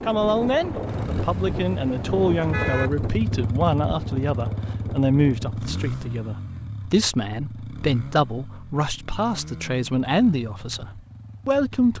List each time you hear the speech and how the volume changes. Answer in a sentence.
The speech can be heard from 0.0 to 11.9 s, at a steady volume.